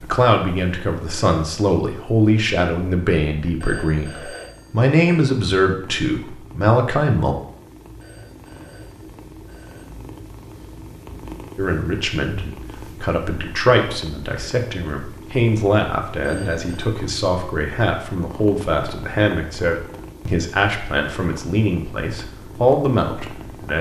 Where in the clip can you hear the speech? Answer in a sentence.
The speech can be heard from 0.0 to 7.3 s and from 11.6 to 23.7 s.